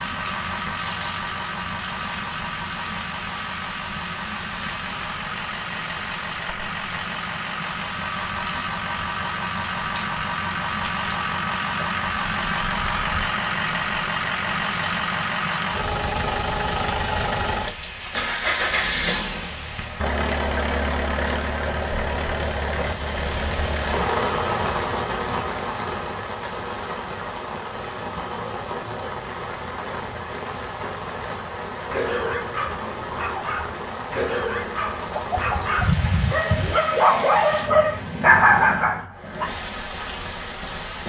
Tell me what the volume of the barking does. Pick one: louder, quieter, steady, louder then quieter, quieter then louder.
louder.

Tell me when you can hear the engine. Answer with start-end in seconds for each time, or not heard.
0.0-24.1.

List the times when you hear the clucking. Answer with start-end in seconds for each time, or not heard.
35.1-36.9.